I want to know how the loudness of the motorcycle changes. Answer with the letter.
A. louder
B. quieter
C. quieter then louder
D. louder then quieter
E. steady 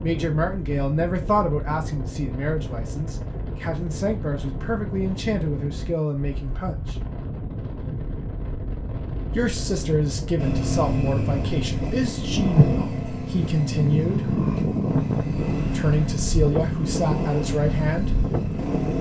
E.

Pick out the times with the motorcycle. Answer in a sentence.
You can hear the motorcycle from 10.3 to 18.9 s.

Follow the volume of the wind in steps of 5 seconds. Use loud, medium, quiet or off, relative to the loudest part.
medium, medium, loud, loud.